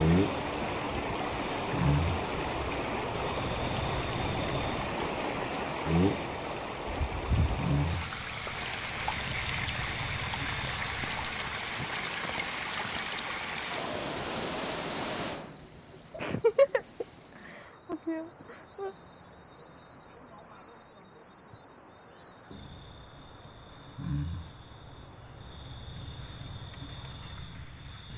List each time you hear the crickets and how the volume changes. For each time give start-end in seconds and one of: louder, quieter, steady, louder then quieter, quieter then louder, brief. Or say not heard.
0.0-28.1 quieter.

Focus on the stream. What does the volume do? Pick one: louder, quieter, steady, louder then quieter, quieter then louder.
quieter.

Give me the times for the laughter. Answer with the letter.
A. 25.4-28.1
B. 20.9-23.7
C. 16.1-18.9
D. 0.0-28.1
C.